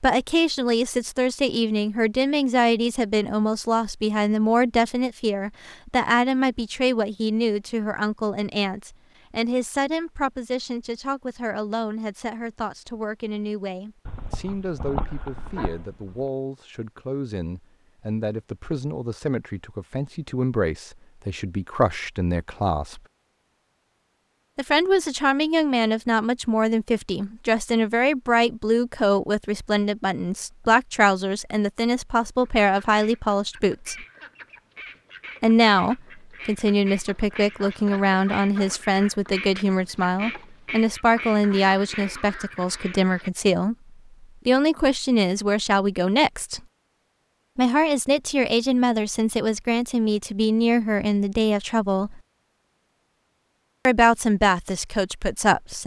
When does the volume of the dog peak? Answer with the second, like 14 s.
15 s.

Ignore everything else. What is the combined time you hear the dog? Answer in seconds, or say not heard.
2 s.